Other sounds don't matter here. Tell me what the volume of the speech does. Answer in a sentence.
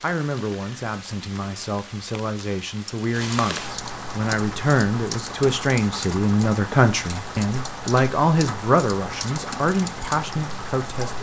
The volume of the speech goes up.